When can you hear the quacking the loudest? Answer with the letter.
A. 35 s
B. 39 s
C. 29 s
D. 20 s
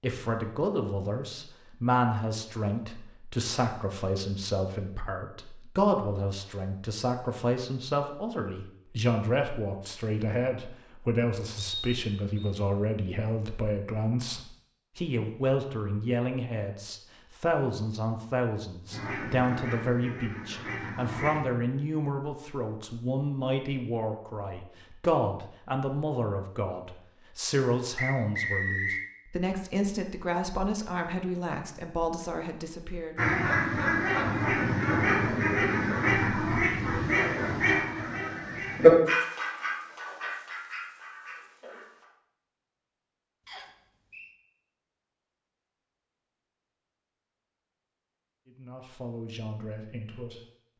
B.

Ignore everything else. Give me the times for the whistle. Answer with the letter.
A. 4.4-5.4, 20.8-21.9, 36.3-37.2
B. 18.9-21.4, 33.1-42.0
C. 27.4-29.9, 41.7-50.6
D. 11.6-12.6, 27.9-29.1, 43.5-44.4
D.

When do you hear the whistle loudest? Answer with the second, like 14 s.
29 s.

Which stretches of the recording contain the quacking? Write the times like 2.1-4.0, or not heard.
18.9-21.4, 33.1-42.0.